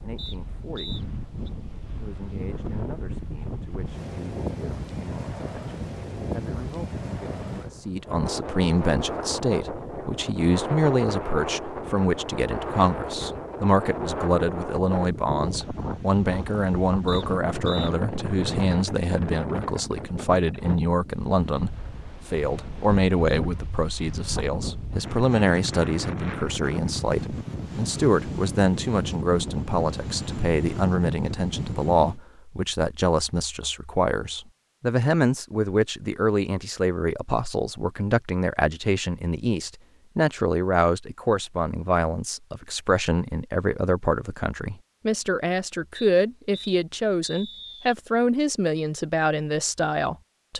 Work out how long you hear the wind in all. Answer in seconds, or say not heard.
32 s.